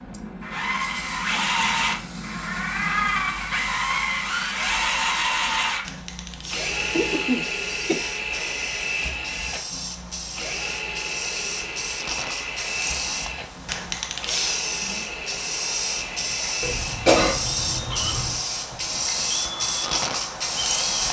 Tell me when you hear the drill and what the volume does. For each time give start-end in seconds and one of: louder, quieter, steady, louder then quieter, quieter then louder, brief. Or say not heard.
0.0-20.9 quieter.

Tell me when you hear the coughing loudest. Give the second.
17 s.